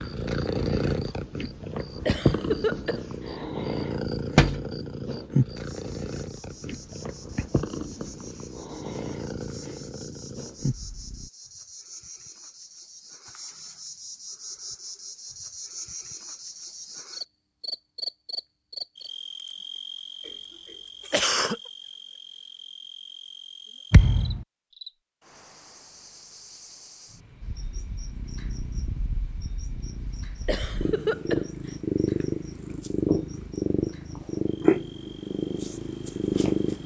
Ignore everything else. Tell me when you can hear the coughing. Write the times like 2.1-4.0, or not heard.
2.0-3.5, 21.1-21.6, 30.4-31.5.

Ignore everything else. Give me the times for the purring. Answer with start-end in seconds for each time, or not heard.
0.0-11.3, 27.4-36.8.